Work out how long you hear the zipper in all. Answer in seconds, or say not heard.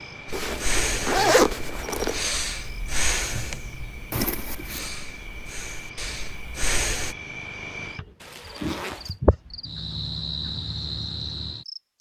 4 s.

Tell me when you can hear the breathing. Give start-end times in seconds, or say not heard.
0.4-7.2.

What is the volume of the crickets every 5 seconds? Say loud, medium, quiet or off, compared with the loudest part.
medium, loud, loud.